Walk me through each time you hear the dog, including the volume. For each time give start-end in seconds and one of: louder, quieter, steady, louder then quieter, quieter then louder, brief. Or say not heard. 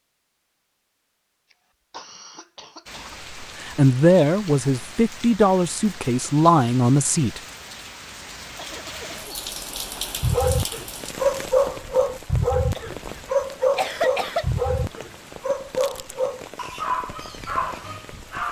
10.2-18.4 quieter.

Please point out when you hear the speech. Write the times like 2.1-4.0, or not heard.
3.4-7.4.